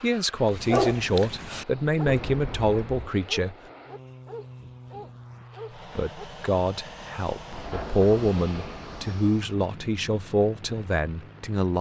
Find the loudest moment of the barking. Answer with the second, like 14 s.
1 s.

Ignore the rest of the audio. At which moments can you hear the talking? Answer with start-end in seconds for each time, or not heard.
0.0-3.5, 6.0-11.7.